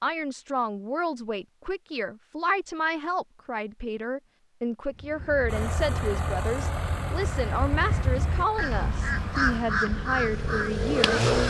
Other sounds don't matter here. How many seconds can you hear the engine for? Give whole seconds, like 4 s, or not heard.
6 s.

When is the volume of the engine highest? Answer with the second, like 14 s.
11 s.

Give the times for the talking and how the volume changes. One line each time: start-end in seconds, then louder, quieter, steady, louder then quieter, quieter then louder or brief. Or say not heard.
0.0-11.2 steady.